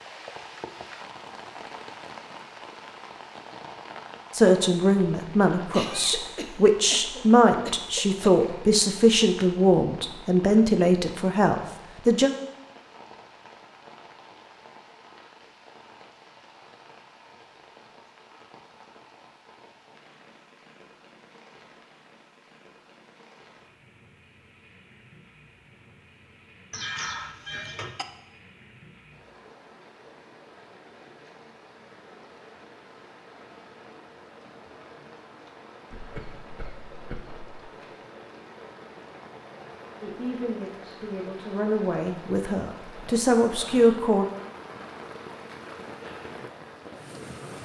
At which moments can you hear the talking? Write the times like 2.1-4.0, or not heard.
4.3-12.3, 40.0-44.2.